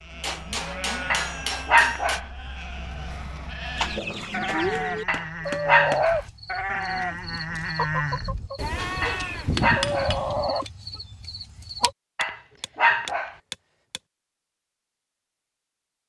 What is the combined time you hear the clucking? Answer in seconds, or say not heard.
8 s.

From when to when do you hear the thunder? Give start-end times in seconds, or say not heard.
not heard.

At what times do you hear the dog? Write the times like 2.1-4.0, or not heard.
1.1-2.2, 5.0-6.2, 9.0-10.2, 12.2-13.3.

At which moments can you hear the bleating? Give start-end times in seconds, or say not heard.
0.0-10.5.